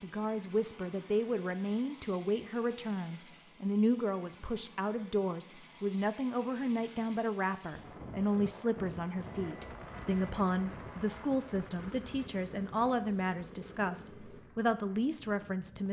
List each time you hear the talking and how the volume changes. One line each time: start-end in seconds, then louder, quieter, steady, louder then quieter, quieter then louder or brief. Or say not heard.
0.0-15.8 steady.